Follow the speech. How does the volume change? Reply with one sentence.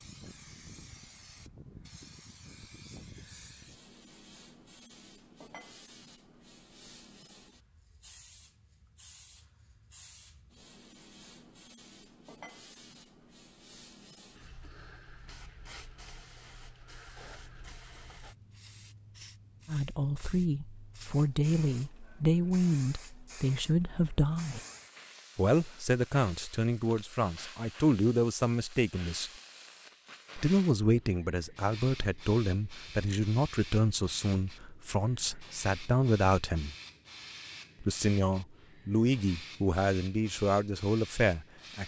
The loudness of the speech stays about the same.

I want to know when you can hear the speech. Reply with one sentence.
You can hear the speech from 19.6 to 24.6 s, from 25.4 to 29.3 s, from 30.4 to 36.8 s and from 37.8 to 41.8 s.